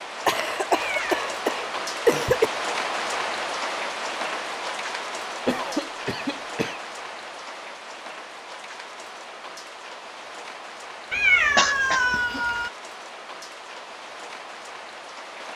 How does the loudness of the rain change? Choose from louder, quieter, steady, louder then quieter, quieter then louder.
quieter.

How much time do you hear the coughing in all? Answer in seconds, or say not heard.
4 s.